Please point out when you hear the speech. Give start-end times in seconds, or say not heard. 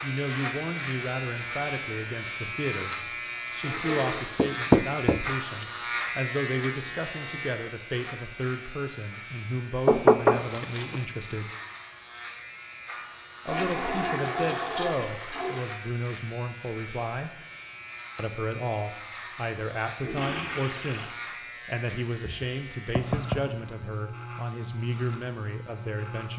0.0-11.5, 13.4-17.4, 18.1-26.3.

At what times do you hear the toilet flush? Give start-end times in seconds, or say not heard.
3.6-4.2, 13.4-15.7, 20.0-21.1.